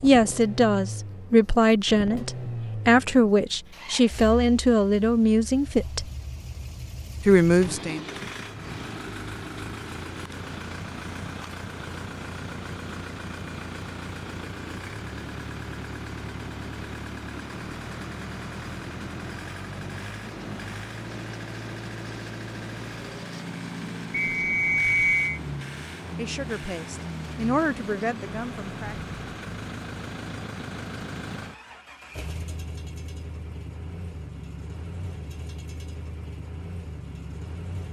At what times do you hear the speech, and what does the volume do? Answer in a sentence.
The speech can be heard from 0.0 to 6.0 s, at a steady volume; briefly from 7.2 to 8.1 s; and briefly from 26.1 to 28.9 s.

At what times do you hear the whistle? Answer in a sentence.
The whistle can be heard from 24.1 to 25.4 s.